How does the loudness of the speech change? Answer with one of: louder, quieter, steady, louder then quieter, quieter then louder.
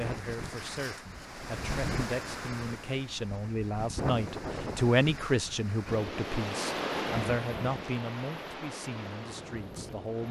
louder then quieter.